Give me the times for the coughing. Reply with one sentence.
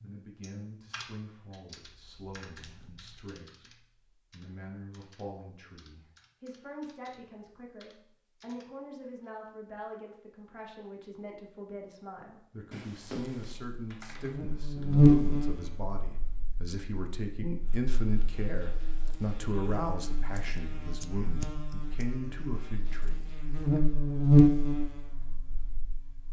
The coughing can't be heard in this clip.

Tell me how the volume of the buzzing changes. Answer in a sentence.
The loudness of the buzzing goes down, then up.